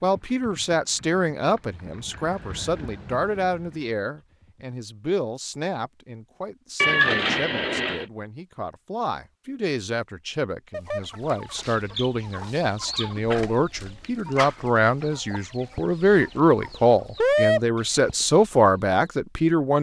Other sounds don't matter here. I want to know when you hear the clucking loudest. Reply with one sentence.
The loudest moment of the clucking is at 17 seconds.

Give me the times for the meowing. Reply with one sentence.
The meowing can be heard from 6.8 to 8.1 s.